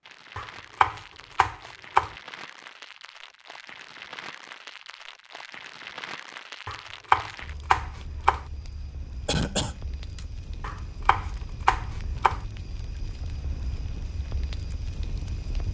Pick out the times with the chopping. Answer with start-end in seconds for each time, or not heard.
0.3-2.1, 6.7-8.4, 10.6-12.4.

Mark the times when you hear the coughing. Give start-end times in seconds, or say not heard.
9.2-10.2.